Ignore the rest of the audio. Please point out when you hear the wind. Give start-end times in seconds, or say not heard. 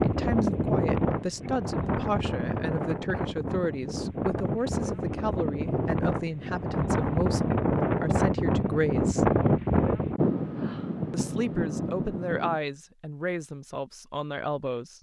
0.0-12.6.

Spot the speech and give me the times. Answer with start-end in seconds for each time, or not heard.
0.0-9.2, 11.1-14.9.